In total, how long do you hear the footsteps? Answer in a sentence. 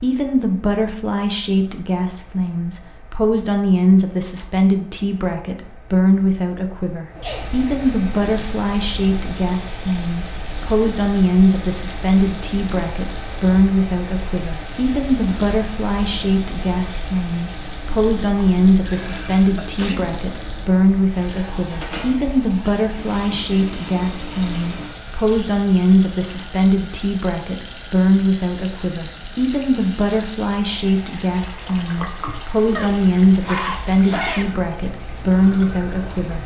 You can't hear the footsteps here.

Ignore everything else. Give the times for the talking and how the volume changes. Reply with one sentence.
The talking can be heard from 0.0 to 36.4 s, at a steady volume.